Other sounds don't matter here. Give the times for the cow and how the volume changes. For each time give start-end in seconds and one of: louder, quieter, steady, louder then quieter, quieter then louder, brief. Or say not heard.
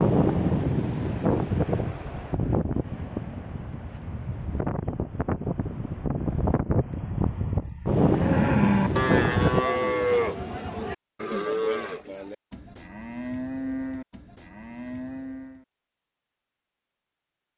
8.1-15.7 quieter.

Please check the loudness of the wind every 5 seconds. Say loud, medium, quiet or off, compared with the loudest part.
loud, loud, off, off.